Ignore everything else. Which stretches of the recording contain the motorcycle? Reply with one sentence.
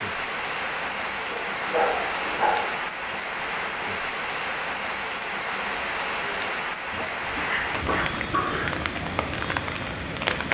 You can't hear the motorcycle here.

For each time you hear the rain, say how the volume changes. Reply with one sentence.
The rain can be heard from 0.0 to 10.5 s, at a steady volume.